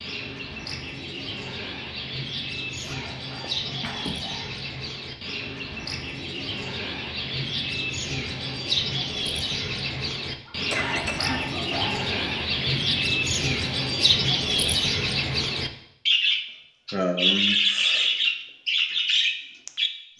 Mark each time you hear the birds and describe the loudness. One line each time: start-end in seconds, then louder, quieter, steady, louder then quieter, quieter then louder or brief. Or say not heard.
0.0-19.9 louder.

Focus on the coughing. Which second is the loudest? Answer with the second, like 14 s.
17 s.